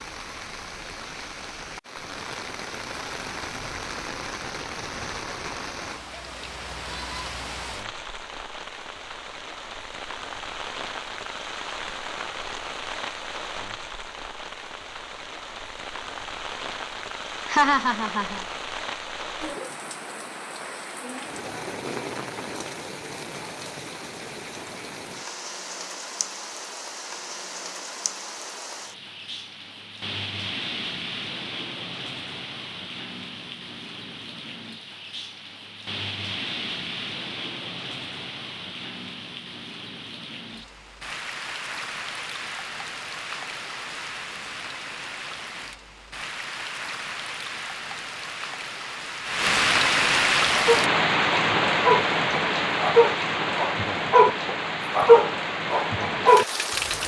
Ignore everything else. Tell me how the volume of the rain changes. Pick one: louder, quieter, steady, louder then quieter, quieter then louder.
louder.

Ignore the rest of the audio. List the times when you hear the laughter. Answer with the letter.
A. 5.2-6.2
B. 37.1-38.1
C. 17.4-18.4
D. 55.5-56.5
C.